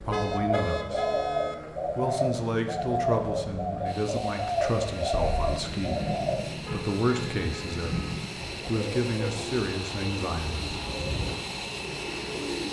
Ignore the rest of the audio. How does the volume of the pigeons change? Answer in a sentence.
The volume of the pigeons goes down.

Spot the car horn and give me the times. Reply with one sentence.
The car horn can be heard from 0.1 to 1.6 s and from 6.6 to 8.1 s.